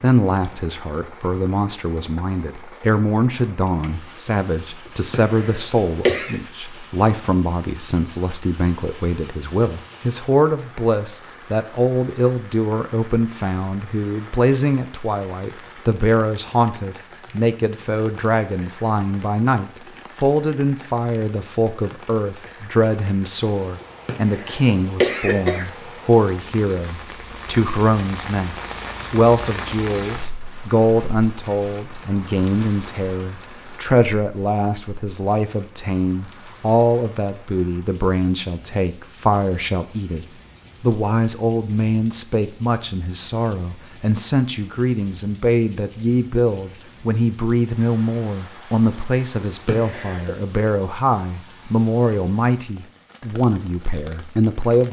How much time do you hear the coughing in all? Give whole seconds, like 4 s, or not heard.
4 s.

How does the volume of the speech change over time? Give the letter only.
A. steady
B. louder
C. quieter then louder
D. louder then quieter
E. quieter
A.